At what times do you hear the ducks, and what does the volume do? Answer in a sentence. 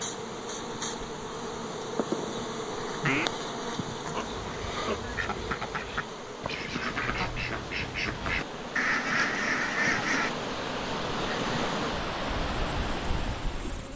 You can hear the ducks from 3.0 to 10.3 s, getting louder.